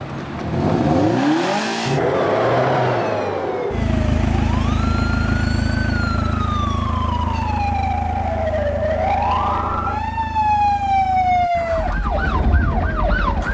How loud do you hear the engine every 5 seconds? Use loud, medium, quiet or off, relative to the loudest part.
loud, medium, quiet.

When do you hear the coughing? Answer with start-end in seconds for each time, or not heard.
not heard.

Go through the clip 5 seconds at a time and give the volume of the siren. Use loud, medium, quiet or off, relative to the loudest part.
quiet, loud, loud.